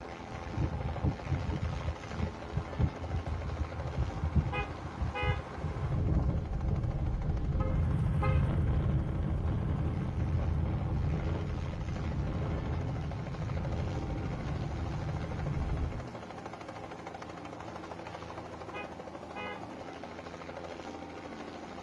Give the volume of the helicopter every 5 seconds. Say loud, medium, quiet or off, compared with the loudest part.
loud, medium, loud, loud, loud.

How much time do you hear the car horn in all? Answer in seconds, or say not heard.
3 s.